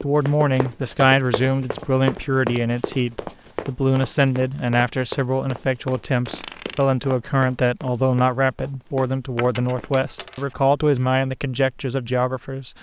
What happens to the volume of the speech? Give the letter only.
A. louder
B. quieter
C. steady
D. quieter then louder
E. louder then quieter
C.